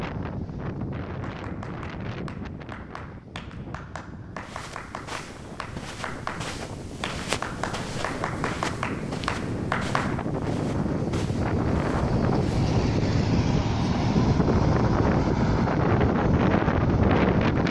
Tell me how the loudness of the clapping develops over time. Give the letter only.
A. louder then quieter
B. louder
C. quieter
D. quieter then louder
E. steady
B.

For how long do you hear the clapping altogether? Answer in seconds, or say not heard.
9 s.